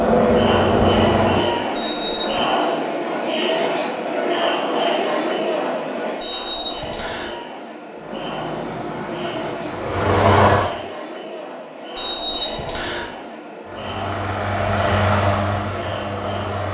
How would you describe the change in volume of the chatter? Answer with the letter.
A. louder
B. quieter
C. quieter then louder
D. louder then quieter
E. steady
B.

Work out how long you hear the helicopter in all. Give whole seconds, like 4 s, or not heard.
7 s.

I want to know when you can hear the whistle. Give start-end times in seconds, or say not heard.
1.7-2.5, 6.2-7.3, 11.9-13.1.